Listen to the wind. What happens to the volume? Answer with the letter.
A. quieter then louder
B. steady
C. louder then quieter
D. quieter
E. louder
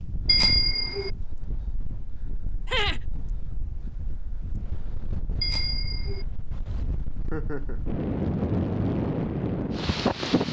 E.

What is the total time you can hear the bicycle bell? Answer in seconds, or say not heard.
2 s.